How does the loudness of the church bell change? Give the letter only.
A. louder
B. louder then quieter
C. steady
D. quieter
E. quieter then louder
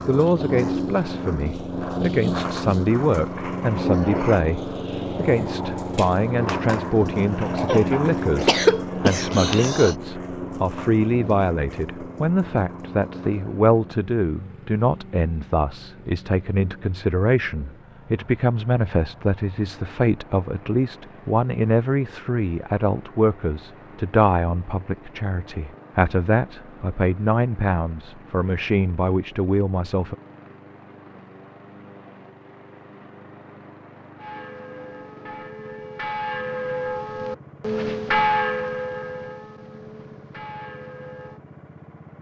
B.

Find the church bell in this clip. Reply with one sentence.
You can hear the church bell from 34.1 to 41.4 s.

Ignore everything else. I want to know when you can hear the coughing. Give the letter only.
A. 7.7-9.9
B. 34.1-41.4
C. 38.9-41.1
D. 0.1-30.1
A.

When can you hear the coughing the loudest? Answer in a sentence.
The loudest moment of the coughing is at 9 seconds.